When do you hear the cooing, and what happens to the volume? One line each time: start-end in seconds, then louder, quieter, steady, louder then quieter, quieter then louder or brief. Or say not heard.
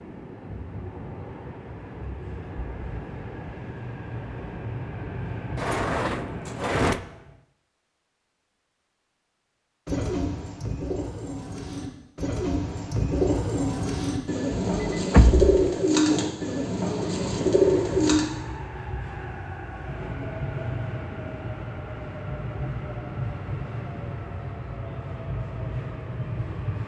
9.8-18.2 louder.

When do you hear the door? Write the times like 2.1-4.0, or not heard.
5.5-7.0, 14.5-15.6.